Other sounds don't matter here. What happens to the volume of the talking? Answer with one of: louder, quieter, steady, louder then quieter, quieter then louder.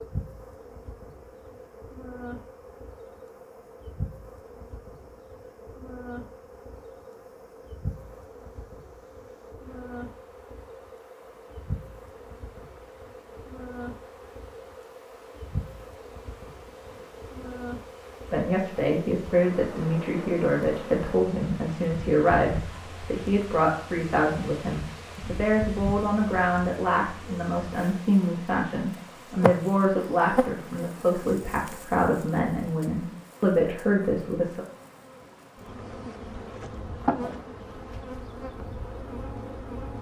steady.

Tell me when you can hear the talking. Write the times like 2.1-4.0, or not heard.
18.3-34.6.